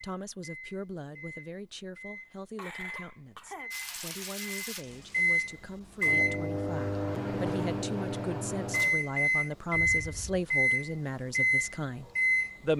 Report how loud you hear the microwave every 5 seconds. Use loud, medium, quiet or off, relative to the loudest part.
quiet, loud, loud.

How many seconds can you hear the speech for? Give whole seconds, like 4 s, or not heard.
13 s.